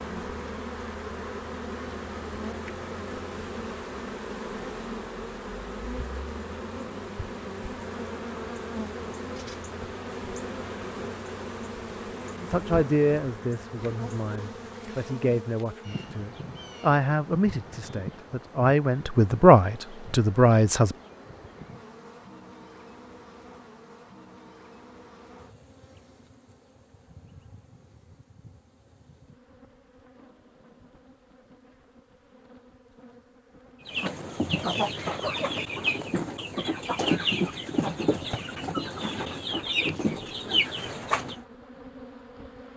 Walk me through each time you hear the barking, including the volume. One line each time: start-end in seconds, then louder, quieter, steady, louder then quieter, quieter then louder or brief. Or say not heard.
not heard.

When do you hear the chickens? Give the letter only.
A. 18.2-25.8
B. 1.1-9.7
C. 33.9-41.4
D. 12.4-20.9
C.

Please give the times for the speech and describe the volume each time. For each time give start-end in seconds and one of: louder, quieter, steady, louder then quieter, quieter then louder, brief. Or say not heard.
12.4-20.9 louder.